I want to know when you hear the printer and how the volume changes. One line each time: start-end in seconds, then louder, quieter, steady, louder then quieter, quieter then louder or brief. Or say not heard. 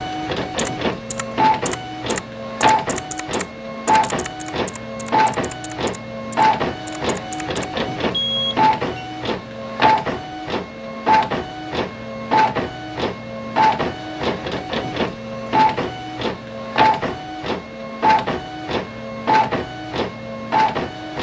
0.0-21.1 steady.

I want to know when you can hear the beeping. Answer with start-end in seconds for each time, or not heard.
8.1-9.1.